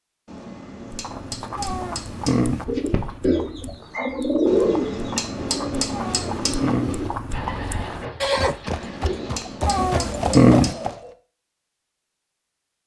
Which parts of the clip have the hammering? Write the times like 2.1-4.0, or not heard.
0.2-2.5, 4.5-6.8, 8.7-10.9.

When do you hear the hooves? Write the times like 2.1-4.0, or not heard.
0.8-10.9.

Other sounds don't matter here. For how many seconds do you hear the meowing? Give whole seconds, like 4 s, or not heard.
3 s.